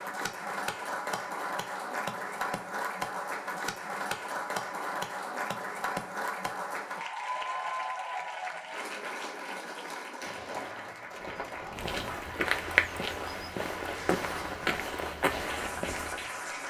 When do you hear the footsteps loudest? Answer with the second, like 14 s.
13 s.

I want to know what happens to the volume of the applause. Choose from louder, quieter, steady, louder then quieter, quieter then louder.
quieter.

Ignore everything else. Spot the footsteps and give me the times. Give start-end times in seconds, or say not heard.
10.2-16.2.